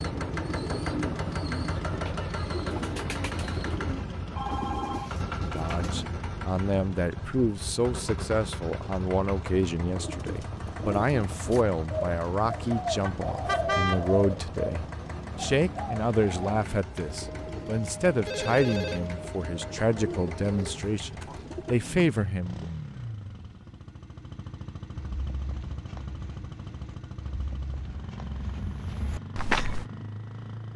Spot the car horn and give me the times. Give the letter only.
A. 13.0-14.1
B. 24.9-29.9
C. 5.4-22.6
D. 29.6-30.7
A.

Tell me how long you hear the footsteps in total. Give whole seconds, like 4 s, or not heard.
5 s.